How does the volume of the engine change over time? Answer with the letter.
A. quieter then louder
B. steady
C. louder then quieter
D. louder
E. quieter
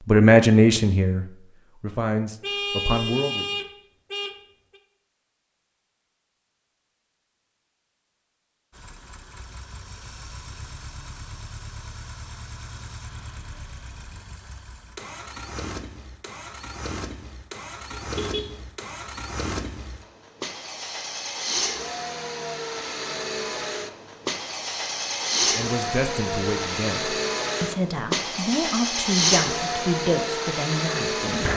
D.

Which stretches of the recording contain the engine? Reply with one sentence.
You can hear the engine from 8.7 to 31.5 s.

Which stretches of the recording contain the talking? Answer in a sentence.
You can hear the talking from 0.1 to 3.6 s and from 25.6 to 31.5 s.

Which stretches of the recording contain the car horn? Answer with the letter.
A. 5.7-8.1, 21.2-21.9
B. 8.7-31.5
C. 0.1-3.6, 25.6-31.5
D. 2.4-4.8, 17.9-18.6
D.